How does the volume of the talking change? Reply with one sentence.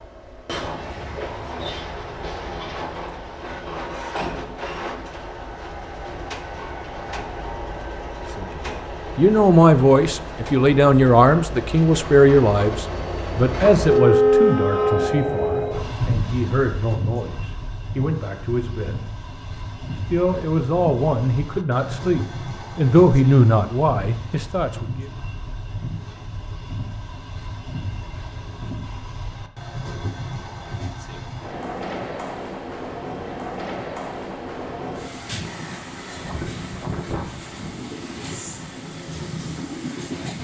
The loudness of the talking goes down, then up.